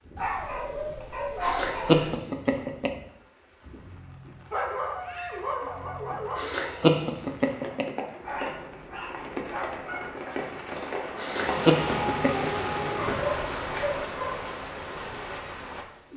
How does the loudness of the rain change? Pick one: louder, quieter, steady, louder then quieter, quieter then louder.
louder.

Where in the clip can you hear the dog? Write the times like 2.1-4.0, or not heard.
0.1-2.1, 4.5-6.5, 8.2-10.1, 12.9-14.4.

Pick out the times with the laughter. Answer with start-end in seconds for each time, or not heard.
1.4-2.9, 6.3-8.0, 11.2-12.4.